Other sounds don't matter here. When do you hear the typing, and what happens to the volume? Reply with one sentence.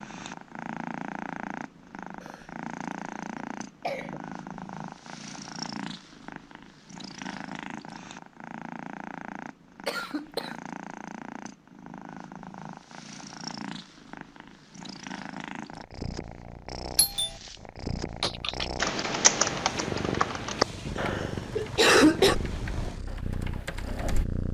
You can hear the typing from 18.2 to 24.2 s, getting quieter.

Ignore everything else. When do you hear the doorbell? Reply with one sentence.
You can hear the doorbell from 16.9 to 17.4 s.